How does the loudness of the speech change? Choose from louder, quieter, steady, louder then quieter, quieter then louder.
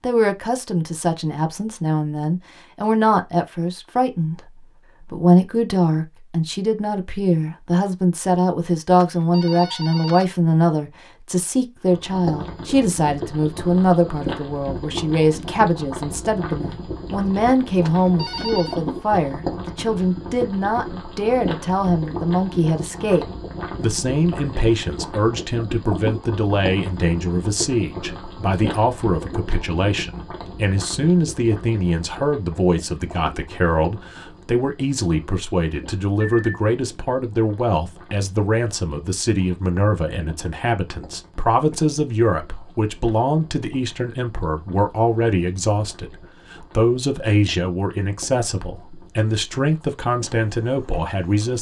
steady.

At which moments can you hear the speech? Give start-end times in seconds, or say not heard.
0.0-51.5.